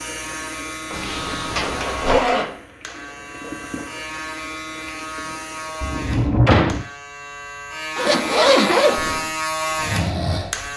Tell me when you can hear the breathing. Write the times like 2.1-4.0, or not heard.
8.9-10.7.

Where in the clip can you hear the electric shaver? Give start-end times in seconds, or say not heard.
0.0-10.7.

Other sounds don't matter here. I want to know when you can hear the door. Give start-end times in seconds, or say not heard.
0.9-2.2, 5.8-6.8.